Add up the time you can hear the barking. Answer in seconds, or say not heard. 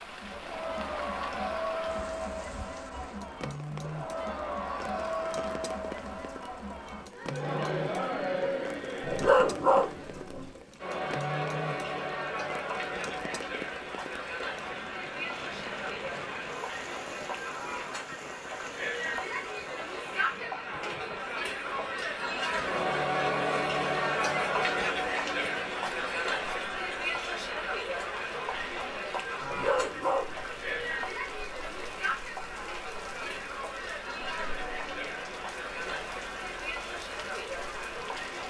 3 s.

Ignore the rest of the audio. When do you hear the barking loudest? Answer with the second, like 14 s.
9 s.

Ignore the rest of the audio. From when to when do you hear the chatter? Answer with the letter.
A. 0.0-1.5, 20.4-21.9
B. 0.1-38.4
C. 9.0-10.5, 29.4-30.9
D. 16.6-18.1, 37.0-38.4
B.